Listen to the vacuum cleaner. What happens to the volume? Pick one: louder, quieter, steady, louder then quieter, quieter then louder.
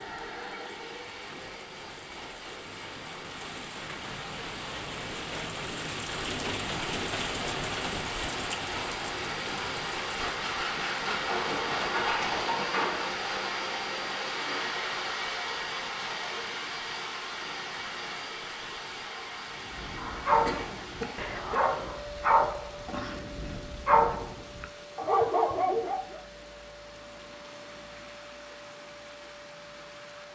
louder then quieter.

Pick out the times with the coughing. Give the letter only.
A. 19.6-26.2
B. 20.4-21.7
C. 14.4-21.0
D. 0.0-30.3
B.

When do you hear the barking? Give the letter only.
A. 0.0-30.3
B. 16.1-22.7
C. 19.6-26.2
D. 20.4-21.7
C.